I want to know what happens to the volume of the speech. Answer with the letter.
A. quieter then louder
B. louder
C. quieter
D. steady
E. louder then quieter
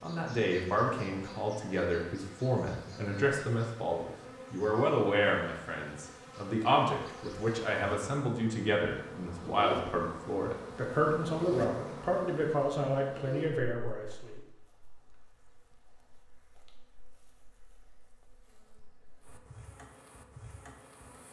D.